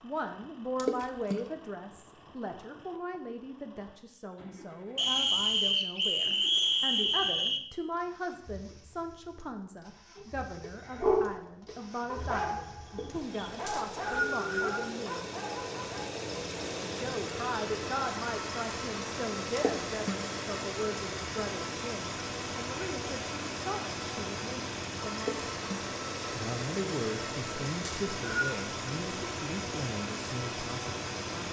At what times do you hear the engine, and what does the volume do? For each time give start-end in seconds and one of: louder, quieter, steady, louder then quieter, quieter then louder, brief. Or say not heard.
0.0-31.4 louder.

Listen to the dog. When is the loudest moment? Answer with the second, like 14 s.
11 s.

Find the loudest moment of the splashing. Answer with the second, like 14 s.
1 s.